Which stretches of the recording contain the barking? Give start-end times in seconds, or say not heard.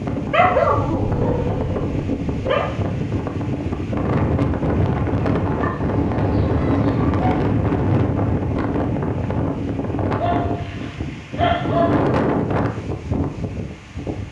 0.3-2.6, 5.5-7.4, 10.2-12.1.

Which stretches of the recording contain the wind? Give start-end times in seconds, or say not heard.
0.0-14.2.